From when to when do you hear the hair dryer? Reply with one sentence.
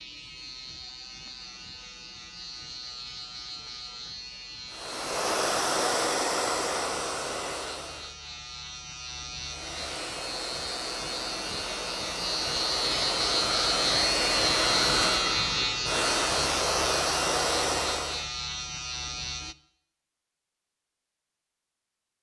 The hair dryer can be heard from 4.7 to 8.2 s and from 9.4 to 18.3 s.